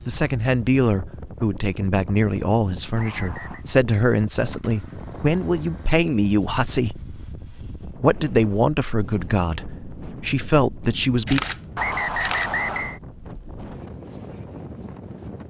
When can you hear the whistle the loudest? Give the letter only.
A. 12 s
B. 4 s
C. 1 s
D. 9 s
A.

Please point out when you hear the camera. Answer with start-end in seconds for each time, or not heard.
4.5-6.0, 11.2-12.5.